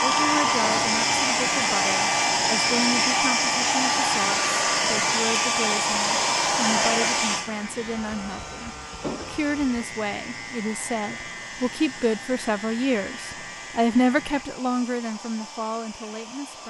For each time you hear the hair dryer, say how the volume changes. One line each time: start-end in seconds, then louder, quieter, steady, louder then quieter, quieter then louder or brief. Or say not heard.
0.0-16.6 quieter.